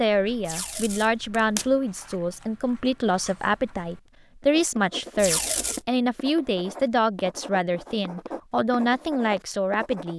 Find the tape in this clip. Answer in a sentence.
You can hear the tape from 0.5 to 1.6 s and from 5.2 to 5.8 s.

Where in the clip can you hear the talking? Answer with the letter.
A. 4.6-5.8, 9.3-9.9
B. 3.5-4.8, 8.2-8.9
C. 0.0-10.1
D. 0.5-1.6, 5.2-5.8
C.